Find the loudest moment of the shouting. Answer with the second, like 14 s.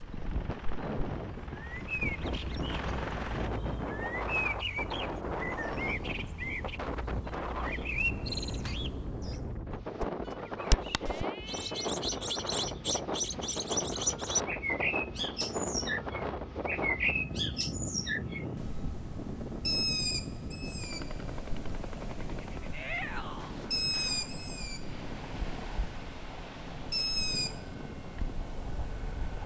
23 s.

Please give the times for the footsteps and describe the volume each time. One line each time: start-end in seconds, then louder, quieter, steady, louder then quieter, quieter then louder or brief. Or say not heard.
not heard.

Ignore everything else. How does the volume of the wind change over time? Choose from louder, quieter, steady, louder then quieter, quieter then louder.
quieter.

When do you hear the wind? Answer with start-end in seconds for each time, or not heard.
0.0-29.4.